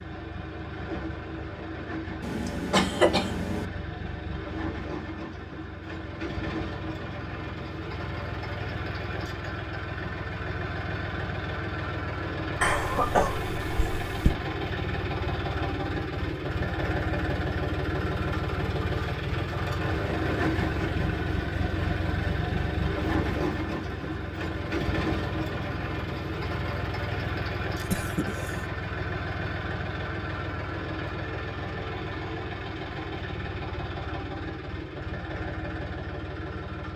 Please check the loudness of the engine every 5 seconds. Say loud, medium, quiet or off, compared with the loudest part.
medium, medium, loud, loud, loud, loud, medium, medium.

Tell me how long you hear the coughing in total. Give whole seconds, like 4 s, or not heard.
4 s.